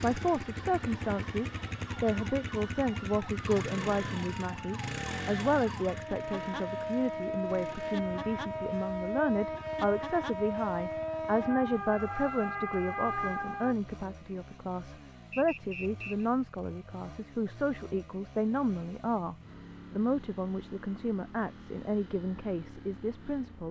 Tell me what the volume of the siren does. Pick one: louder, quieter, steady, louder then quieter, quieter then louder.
louder.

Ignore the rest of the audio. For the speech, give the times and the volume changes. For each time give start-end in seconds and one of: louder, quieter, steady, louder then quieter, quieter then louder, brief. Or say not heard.
0.0-23.6 steady.